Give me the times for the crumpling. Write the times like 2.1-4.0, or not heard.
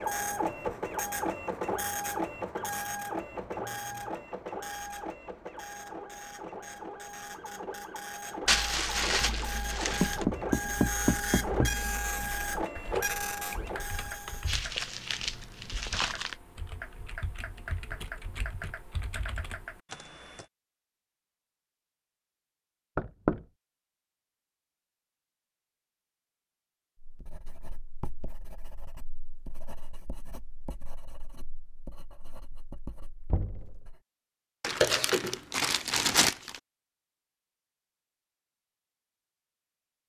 8.4-10.2, 14.4-16.4, 34.6-36.5.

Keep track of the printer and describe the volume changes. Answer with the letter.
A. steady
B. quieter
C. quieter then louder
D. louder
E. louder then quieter
C.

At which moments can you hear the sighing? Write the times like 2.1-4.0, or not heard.
not heard.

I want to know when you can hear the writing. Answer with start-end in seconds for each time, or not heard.
26.9-34.0.